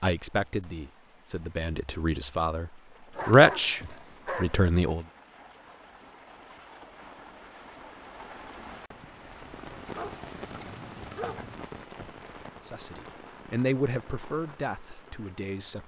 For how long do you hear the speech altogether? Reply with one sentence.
You can hear the speech for 8 seconds altogether.